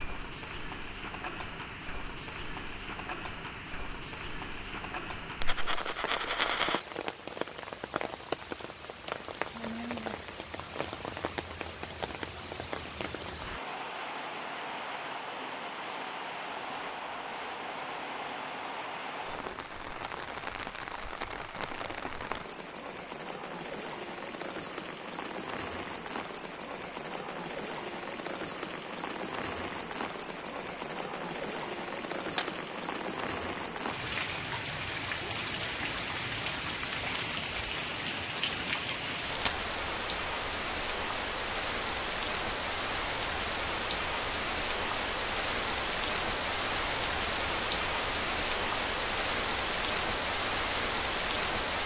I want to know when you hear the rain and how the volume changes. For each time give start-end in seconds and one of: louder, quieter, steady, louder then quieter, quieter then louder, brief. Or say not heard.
0.0-51.8 louder.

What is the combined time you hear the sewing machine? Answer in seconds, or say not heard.
not heard.